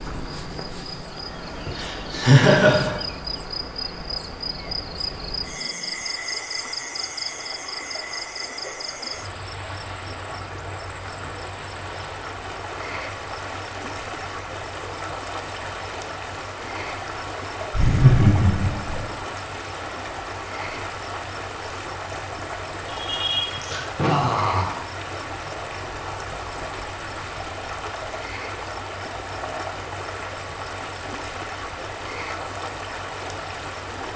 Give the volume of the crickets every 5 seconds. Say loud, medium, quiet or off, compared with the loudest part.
loud, loud, medium, medium, medium, medium, medium.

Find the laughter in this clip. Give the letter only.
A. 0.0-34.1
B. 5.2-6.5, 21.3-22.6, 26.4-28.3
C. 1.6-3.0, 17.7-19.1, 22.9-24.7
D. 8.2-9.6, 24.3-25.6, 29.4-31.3
C.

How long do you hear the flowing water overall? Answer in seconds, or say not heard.
34 s.